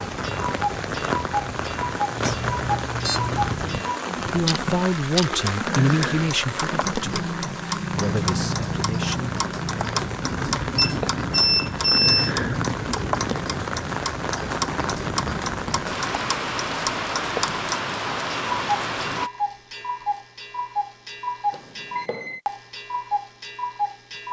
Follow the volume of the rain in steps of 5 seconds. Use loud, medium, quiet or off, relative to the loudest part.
loud, loud, loud, loud, off.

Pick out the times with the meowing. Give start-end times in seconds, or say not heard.
not heard.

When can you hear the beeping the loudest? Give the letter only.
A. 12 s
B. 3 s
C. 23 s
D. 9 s
A.